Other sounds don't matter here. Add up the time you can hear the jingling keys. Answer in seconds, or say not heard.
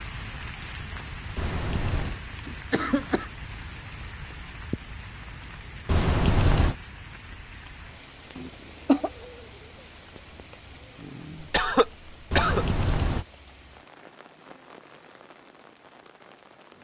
3 s.